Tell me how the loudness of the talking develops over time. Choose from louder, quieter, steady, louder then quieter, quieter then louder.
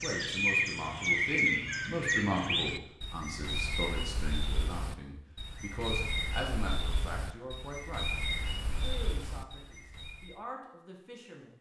quieter.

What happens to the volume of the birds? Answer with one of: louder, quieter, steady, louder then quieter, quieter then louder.
quieter.